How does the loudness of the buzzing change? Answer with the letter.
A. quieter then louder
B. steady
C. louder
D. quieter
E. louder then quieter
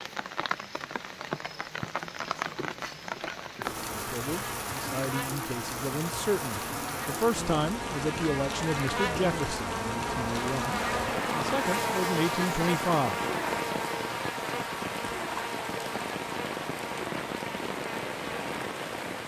E.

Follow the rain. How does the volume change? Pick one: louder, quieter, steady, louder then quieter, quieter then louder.
steady.